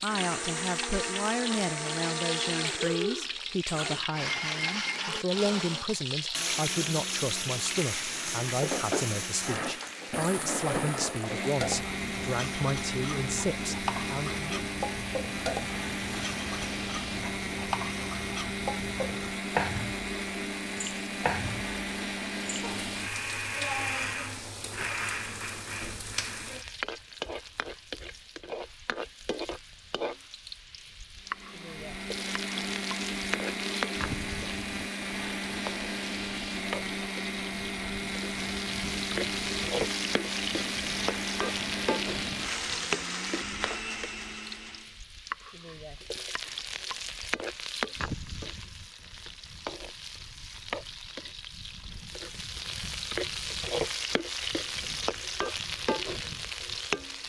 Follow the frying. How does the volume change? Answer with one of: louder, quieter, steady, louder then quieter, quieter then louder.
steady.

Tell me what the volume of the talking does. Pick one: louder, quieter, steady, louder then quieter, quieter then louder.
steady.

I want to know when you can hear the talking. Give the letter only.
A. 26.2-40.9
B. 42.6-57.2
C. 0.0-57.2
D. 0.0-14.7
D.